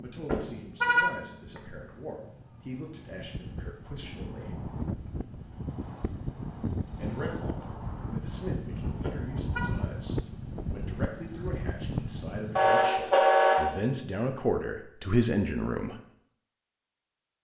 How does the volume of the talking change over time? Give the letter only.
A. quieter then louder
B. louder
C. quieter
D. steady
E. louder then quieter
B.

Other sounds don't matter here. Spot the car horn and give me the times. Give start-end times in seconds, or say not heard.
0.2-1.6, 9.0-9.7, 12.6-13.8.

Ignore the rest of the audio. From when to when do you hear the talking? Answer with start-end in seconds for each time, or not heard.
0.0-4.5, 7.0-15.9.